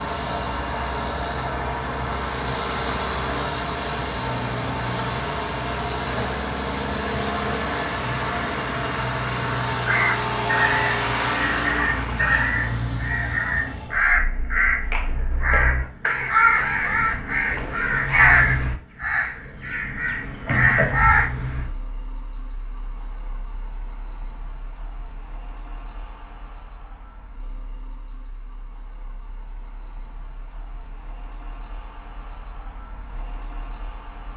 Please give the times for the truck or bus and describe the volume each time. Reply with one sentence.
The truck or bus can be heard from 0.0 to 34.3 s, getting quieter.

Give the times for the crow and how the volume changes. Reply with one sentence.
The crow can be heard from 9.8 to 21.3 s, at a steady volume.